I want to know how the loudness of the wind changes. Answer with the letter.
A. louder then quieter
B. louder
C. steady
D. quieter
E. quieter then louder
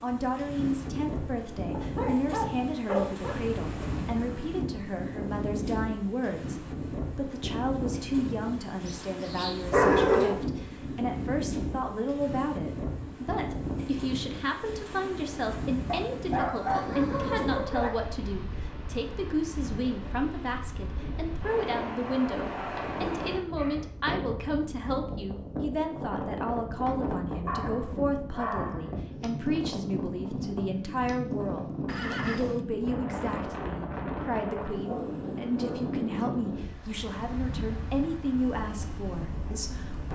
C.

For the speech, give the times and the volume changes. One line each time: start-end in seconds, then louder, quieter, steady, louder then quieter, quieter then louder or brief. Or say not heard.
0.0-40.1 steady.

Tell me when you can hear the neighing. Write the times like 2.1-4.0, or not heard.
3.2-4.2, 16.6-17.4, 31.9-32.6.